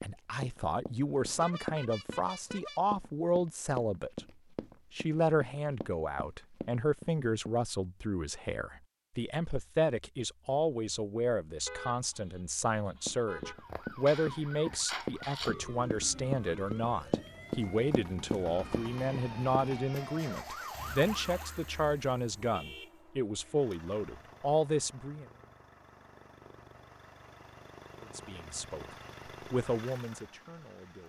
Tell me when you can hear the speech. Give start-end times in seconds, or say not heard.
0.0-4.2, 4.9-25.2, 28.1-31.0.